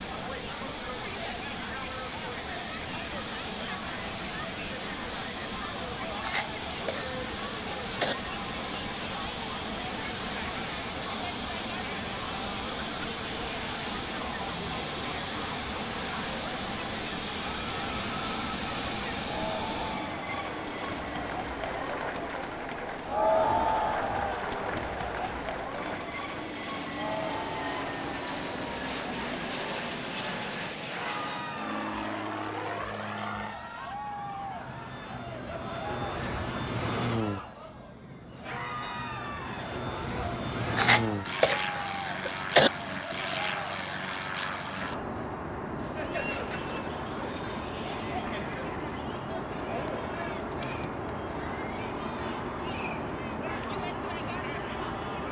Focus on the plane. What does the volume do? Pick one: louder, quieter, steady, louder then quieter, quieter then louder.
steady.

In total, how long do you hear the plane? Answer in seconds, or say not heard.
55 s.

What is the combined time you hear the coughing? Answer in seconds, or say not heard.
4 s.